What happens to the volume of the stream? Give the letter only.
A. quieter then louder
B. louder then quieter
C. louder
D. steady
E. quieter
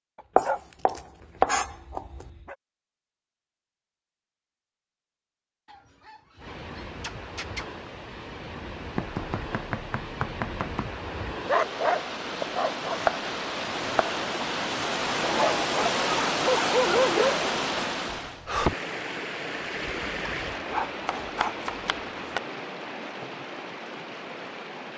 B.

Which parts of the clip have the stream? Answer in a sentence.
The stream can be heard from 6.4 to 24.9 s.